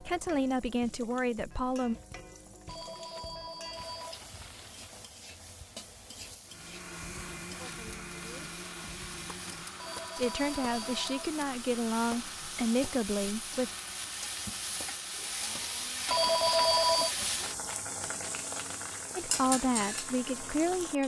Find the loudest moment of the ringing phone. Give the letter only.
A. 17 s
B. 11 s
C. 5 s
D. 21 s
A.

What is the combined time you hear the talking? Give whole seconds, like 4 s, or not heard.
7 s.